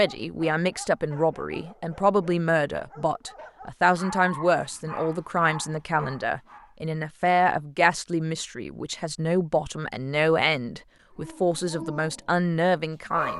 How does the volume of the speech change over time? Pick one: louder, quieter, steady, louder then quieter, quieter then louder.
steady.